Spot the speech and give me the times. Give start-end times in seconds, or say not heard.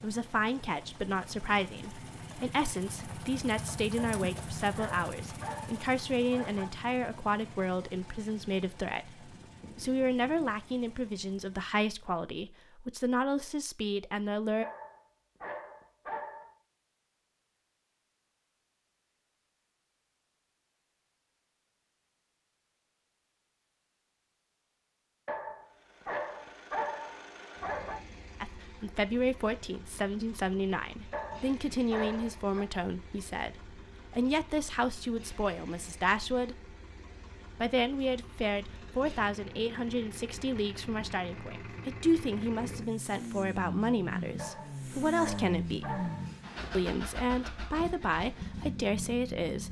0.0-14.7, 28.4-36.8, 37.5-46.0, 46.7-49.6.